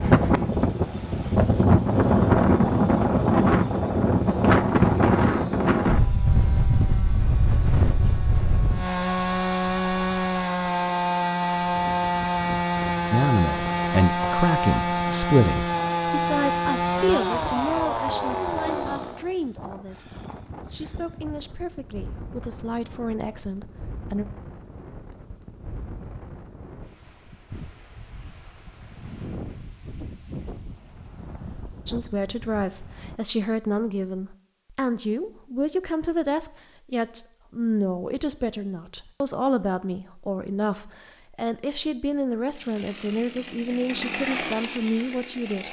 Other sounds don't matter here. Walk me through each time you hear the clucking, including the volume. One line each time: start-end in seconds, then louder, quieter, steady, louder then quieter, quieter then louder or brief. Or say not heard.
not heard.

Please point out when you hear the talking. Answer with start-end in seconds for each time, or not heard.
13.1-24.2, 31.9-45.6.